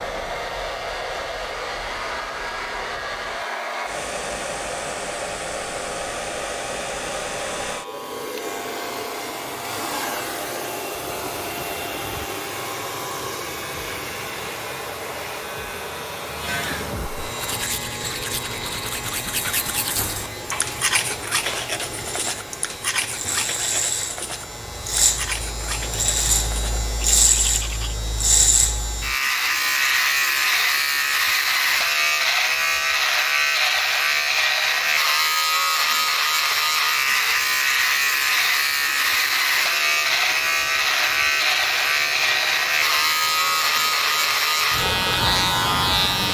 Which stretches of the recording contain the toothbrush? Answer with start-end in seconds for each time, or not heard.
17.4-27.9.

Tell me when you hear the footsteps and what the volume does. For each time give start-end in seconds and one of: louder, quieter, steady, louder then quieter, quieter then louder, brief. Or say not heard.
not heard.